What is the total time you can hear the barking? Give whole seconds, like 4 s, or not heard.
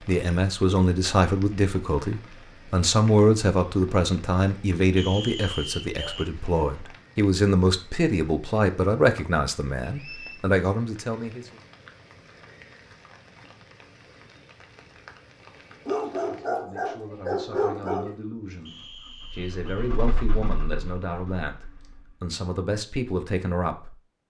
3 s.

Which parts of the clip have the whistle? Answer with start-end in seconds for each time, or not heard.
5.0-6.2, 9.8-10.5, 18.6-19.9.